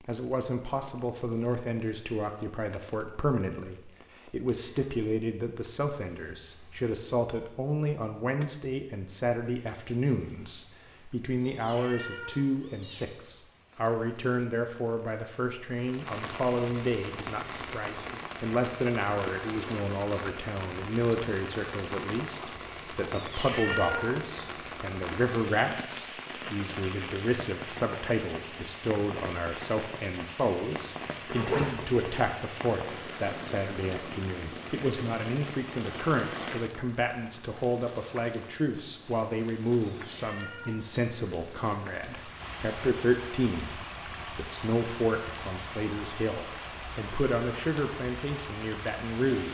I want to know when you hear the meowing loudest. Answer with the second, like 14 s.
24 s.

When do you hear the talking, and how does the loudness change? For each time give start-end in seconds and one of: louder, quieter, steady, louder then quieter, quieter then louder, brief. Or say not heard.
0.1-49.4 steady.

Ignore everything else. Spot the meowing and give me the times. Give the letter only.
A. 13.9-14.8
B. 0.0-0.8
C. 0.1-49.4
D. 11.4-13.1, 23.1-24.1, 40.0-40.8
D.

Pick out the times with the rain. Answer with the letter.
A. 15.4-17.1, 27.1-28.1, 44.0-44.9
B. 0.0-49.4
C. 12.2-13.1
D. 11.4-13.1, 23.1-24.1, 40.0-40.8
B.